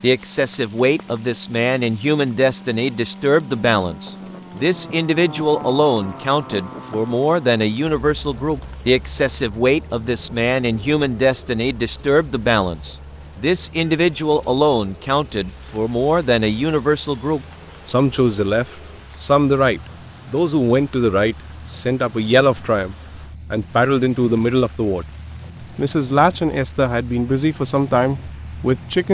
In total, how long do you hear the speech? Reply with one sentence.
You can hear the speech for 29 seconds altogether.